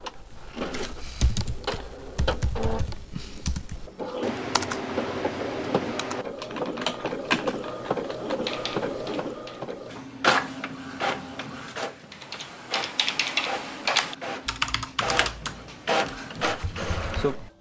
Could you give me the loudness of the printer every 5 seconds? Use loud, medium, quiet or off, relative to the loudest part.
medium, loud, loud, loud.